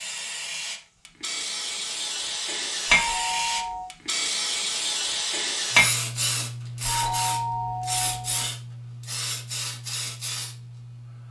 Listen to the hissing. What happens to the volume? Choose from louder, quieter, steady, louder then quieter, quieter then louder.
louder then quieter.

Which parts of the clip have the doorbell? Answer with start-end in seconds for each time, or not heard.
2.9-3.9, 6.8-8.5.